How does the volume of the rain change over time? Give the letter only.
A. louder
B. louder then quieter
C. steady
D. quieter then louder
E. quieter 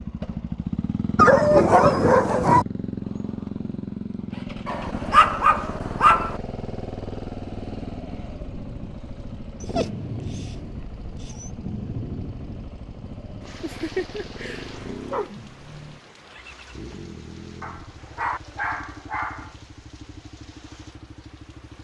E.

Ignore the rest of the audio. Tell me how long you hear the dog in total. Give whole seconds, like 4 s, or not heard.
9 s.